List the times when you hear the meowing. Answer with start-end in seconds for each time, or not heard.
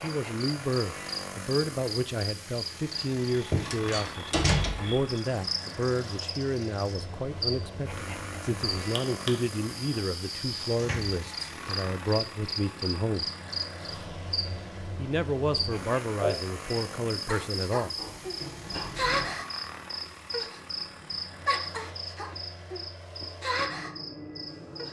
not heard.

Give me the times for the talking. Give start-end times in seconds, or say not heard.
0.0-13.3, 14.9-17.9.